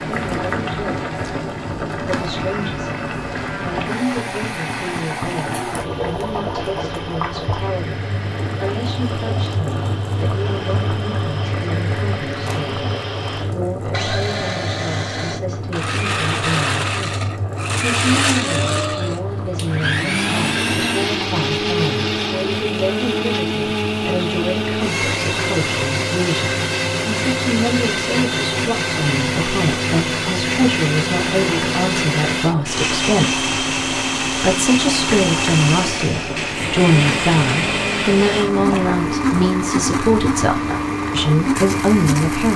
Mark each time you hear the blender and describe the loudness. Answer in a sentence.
You can hear the blender from 0.0 to 42.5 s, getting louder.